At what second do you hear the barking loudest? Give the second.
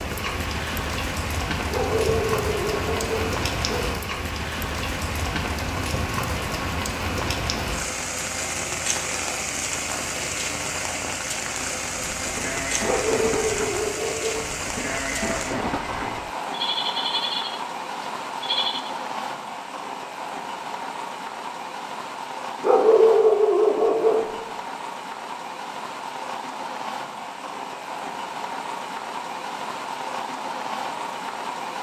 23 s.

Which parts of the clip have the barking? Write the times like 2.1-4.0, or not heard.
1.7-3.9, 12.8-14.4, 22.6-24.2.